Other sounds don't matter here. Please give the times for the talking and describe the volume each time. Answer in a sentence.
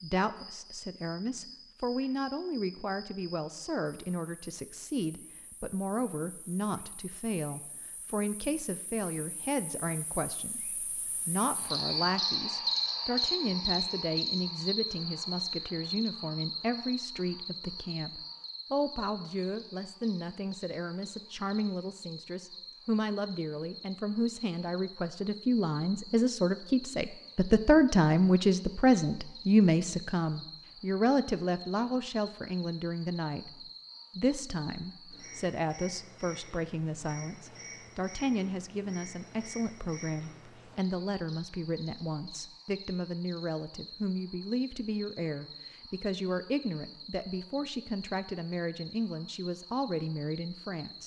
You can hear the talking from 0.0 to 51.0 s, getting louder then quieter.